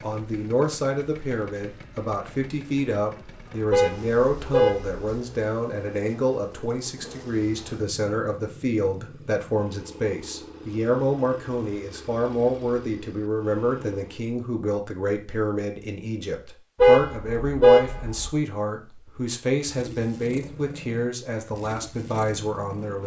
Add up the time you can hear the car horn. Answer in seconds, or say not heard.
3 s.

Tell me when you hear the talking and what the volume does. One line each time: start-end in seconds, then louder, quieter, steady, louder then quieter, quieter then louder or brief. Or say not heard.
0.0-23.0 steady.